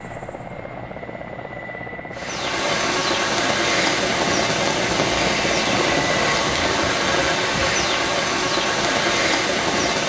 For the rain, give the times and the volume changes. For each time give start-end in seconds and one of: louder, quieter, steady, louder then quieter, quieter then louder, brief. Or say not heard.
2.1-10.0 steady.